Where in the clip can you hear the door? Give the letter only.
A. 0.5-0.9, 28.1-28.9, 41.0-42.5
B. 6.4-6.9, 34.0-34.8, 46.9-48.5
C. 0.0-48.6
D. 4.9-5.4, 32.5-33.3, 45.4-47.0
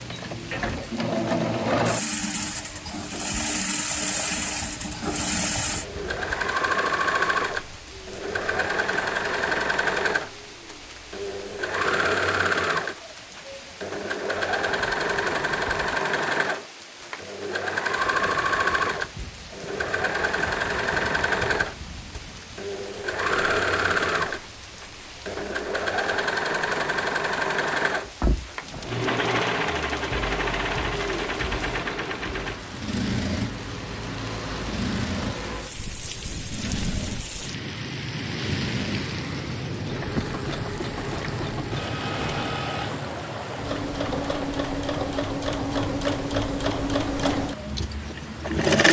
A.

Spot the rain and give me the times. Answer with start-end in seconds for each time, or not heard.
0.0-48.6.